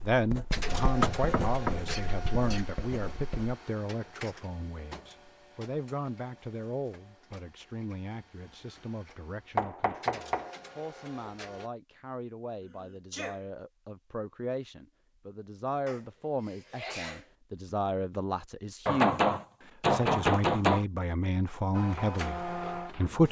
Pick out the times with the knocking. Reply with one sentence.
You can hear the knocking from 0.8 to 1.8 s, from 9.6 to 10.5 s and from 18.9 to 20.9 s.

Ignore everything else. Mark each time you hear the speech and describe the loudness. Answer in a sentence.
You can hear the speech from 0.0 to 23.2 s, getting quieter then louder.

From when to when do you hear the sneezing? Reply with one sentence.
The sneezing can be heard from 1.9 to 2.6 s, from 12.6 to 13.4 s and from 15.8 to 17.3 s.